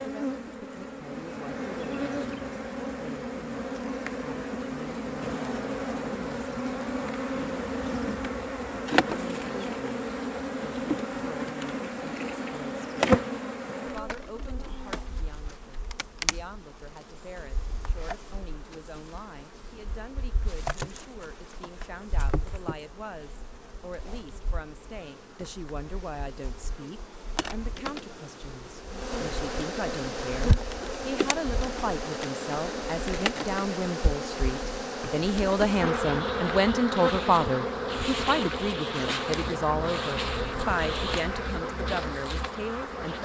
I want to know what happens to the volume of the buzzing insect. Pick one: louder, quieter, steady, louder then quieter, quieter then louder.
quieter then louder.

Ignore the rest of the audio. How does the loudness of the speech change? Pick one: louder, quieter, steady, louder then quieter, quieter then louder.
louder.